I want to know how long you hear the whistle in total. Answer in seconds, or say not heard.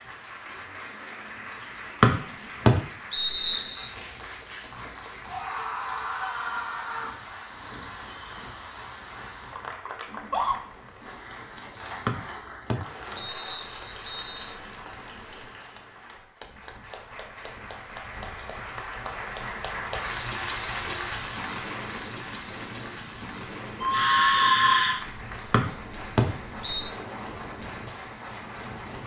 6 s.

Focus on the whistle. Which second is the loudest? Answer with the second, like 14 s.
2 s.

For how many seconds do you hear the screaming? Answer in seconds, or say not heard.
4 s.